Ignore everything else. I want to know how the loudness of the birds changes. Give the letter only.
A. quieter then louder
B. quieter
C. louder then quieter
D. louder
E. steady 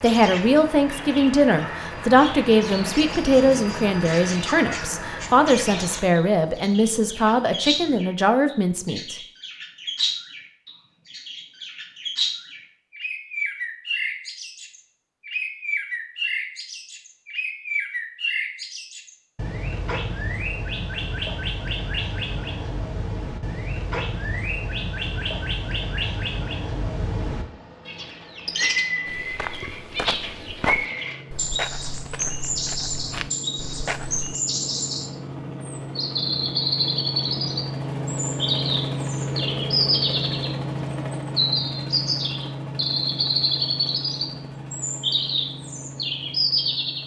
D.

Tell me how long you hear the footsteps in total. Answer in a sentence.
The footsteps can be heard for 5 seconds in total.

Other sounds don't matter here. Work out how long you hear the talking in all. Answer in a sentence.
The talking can be heard for 9 seconds in total.